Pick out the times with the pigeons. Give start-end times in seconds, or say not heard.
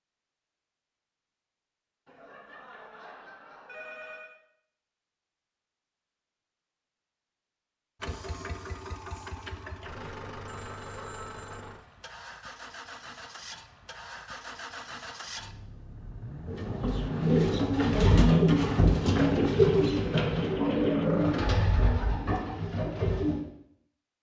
16.4-23.4.